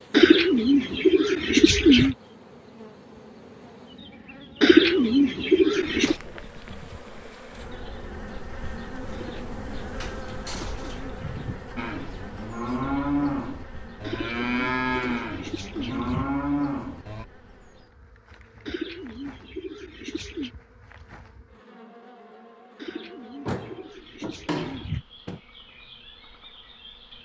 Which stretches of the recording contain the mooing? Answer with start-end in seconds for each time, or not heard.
11.8-17.2.